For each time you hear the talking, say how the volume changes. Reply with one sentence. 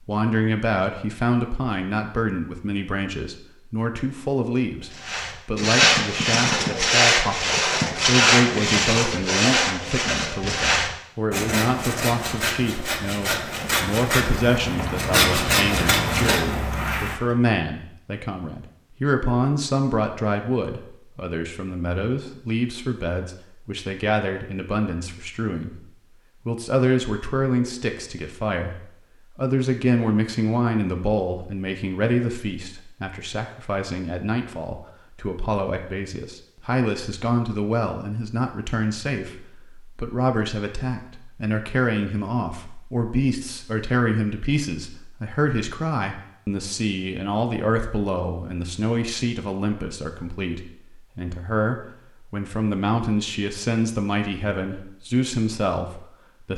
The talking can be heard from 0.0 to 56.5 s, at a steady volume.